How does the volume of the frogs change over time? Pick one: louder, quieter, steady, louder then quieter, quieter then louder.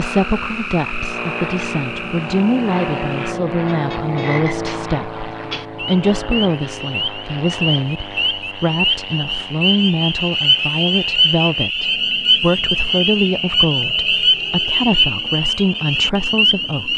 louder.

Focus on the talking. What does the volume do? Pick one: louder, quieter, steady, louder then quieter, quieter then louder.
steady.